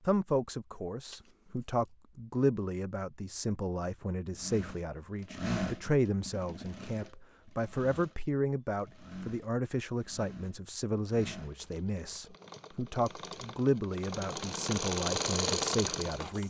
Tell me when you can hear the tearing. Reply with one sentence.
You can't hear the tearing here.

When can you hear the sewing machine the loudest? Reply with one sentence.
The loudest moment of the sewing machine is at 15 seconds.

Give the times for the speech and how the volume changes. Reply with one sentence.
The speech can be heard from 0.1 to 16.4 s, at a steady volume.